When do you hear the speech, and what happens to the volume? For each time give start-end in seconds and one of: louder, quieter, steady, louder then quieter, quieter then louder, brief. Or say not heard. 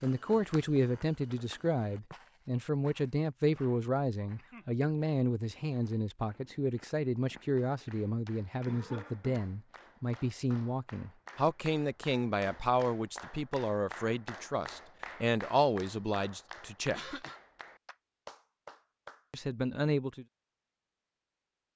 0.0-17.1 steady
19.3-20.2 brief.